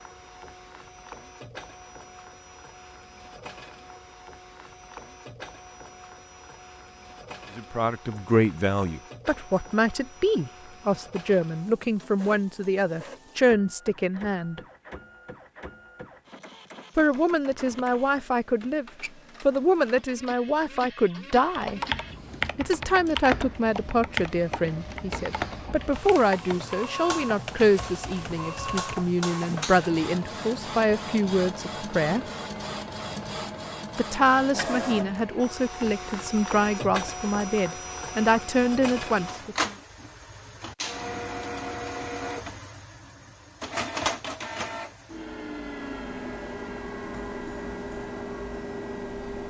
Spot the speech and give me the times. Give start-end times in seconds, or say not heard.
7.5-14.6, 16.9-21.8, 22.6-32.2, 34.0-39.8.